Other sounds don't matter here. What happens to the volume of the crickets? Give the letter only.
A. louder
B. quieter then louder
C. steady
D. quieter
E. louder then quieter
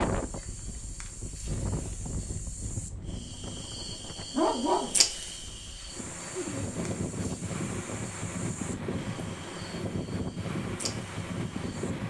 E.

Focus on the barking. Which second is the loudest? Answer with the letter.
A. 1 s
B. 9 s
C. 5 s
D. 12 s
C.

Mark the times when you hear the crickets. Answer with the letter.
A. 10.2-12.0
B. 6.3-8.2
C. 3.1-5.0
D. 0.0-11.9
D.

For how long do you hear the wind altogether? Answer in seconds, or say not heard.
12 s.